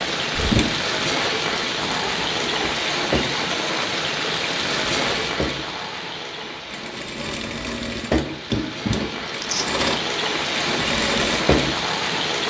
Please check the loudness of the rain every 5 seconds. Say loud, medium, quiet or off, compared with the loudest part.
loud, medium, loud.